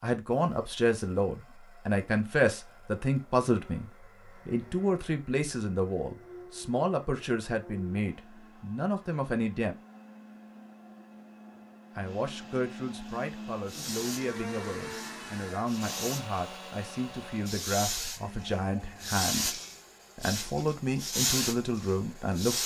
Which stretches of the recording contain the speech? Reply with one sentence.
The speech can be heard from 0.0 to 9.8 s and from 11.9 to 22.6 s.